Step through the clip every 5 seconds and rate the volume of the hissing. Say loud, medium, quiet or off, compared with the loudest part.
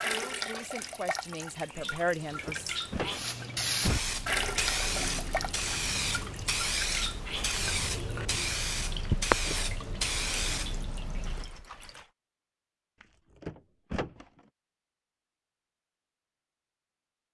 loud, loud, loud, off.